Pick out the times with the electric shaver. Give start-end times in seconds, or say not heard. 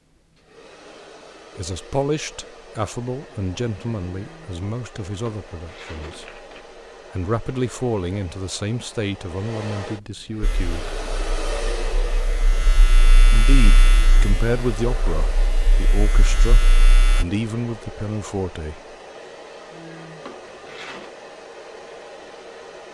10.4-17.2.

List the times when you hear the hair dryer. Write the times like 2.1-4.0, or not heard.
0.0-22.8.